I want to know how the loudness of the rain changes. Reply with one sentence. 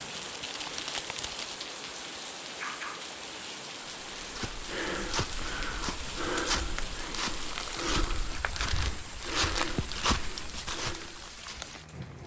The loudness of the rain stays about the same.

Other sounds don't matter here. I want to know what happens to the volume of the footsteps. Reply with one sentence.
The volume of the footsteps stays about the same.